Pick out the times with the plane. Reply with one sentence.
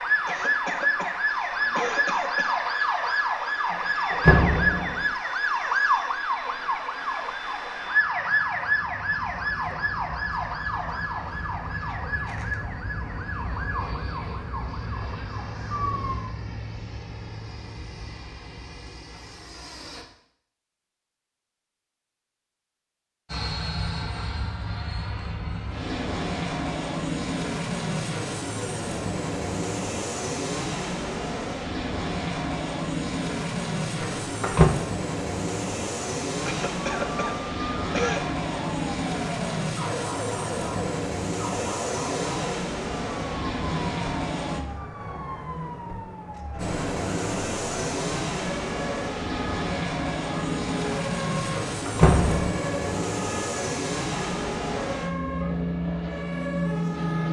The plane can be heard from 0.0 to 20.1 s, from 23.2 to 44.6 s and from 46.5 to 57.2 s.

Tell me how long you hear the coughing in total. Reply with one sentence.
You can hear the coughing for 4 seconds altogether.